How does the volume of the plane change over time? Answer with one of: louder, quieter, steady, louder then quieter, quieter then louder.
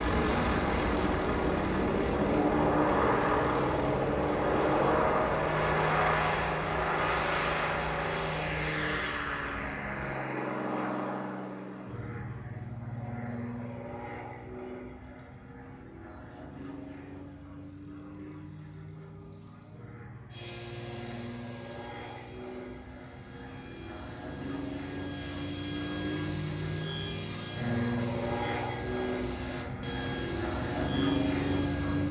quieter then louder.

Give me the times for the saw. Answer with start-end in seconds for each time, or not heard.
20.3-32.0.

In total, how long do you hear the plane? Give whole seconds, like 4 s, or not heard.
32 s.